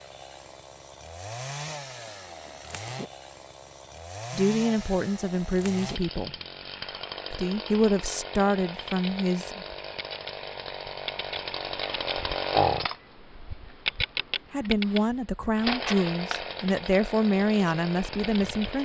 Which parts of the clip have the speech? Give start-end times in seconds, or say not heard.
4.3-6.3, 7.3-9.7, 14.5-18.7.